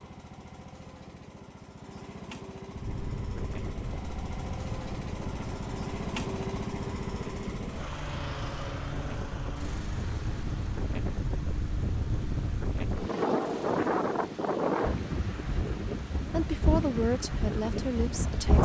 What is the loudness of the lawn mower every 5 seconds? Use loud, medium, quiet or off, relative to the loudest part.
medium, loud, medium, medium.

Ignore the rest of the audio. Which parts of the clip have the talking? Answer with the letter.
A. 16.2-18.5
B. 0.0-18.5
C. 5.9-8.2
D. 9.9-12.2
A.